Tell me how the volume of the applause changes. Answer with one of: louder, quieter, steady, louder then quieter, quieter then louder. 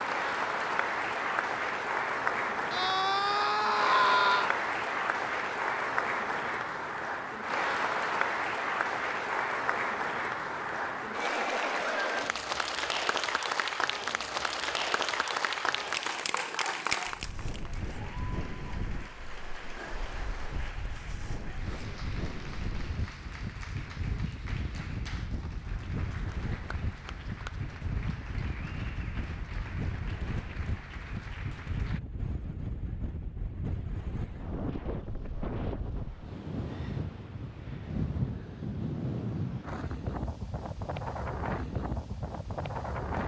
quieter.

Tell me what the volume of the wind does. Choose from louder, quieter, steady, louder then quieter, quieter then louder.
louder.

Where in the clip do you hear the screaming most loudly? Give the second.
4 s.